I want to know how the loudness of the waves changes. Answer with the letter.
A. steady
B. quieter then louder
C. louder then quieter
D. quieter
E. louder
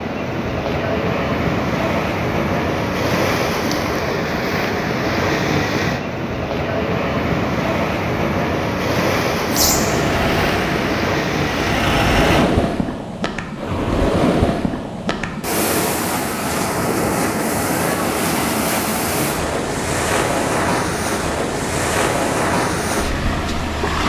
A.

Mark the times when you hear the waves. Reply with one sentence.
You can hear the waves from 0.0 to 24.0 s.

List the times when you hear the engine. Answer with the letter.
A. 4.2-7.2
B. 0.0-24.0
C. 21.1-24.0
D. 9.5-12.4
D.